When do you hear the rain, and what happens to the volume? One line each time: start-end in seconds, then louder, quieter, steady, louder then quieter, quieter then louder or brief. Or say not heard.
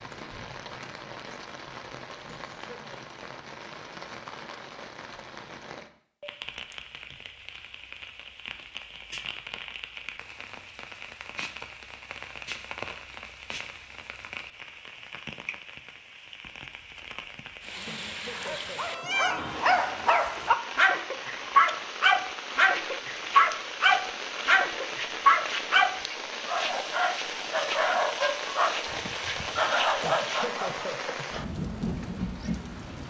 0.0-33.0 louder.